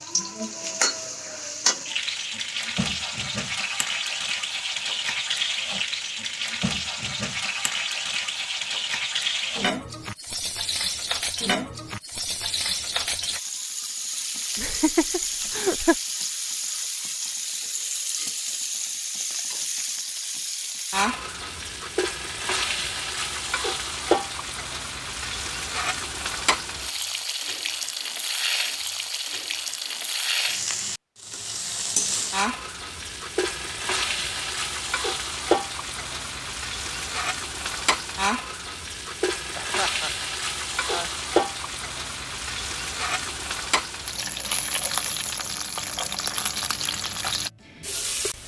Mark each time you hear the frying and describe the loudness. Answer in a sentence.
You can hear the frying from 0.0 to 48.4 s, at a steady volume.